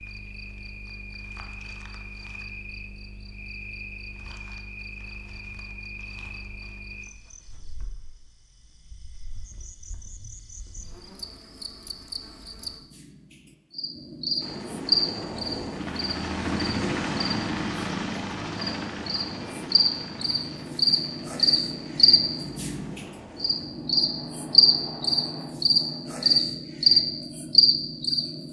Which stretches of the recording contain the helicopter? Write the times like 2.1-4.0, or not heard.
14.4-26.0.